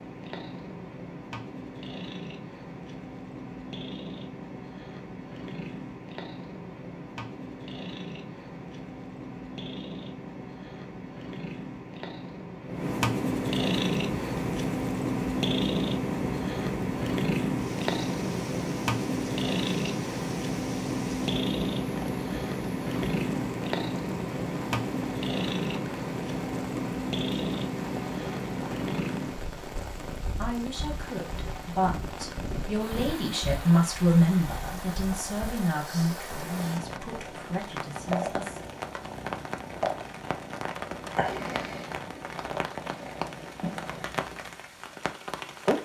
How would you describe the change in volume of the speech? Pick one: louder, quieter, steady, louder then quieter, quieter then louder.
louder then quieter.